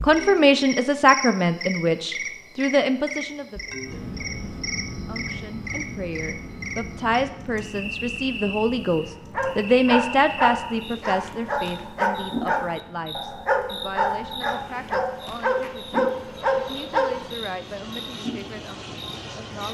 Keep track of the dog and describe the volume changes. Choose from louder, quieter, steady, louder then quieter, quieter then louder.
steady.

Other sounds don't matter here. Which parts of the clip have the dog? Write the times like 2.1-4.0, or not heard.
9.3-17.3.